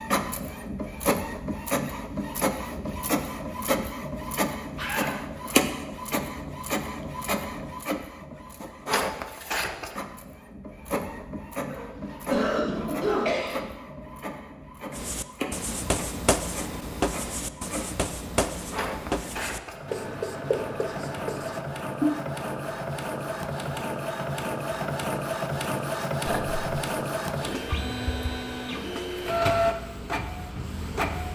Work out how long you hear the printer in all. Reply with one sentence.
You can hear the printer for 31 seconds altogether.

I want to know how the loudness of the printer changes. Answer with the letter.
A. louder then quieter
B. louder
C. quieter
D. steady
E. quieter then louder
E.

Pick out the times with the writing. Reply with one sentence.
The writing can be heard from 14.9 to 22.2 s.